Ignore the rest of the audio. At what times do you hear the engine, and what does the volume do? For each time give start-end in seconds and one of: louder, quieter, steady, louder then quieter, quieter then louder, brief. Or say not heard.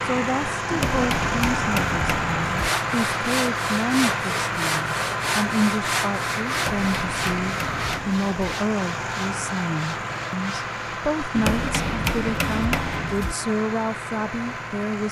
0.0-15.0 quieter.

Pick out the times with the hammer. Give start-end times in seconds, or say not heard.
0.7-2.7, 6.5-8.3, 11.3-13.3.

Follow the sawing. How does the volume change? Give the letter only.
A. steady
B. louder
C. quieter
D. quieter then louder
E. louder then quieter
C.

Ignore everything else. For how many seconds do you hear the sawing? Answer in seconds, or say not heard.
8 s.